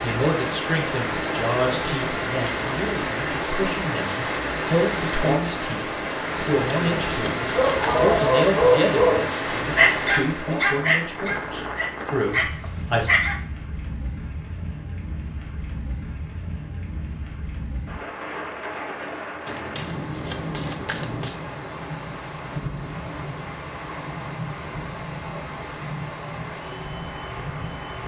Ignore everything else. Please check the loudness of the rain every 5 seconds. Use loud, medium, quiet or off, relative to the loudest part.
loud, loud, medium, medium, medium, medium.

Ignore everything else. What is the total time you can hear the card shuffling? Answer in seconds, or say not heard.
4 s.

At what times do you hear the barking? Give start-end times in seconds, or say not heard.
7.5-13.3.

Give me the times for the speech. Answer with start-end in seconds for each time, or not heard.
0.0-13.1.